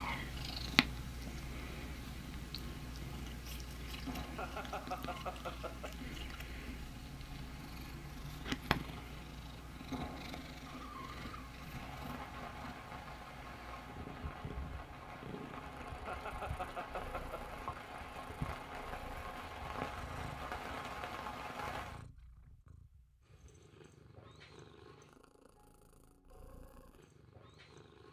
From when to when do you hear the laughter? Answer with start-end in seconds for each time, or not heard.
4.3-6.0, 16.1-17.6.